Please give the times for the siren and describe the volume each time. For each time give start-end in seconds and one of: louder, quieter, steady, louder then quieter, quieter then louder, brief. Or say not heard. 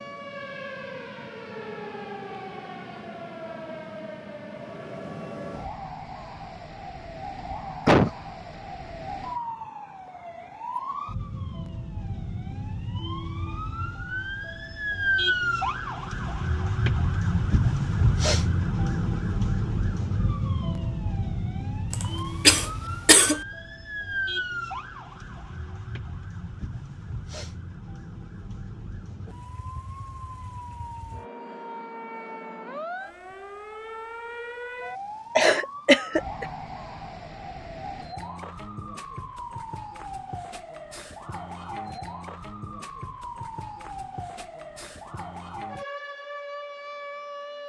0.0-47.6 louder then quieter.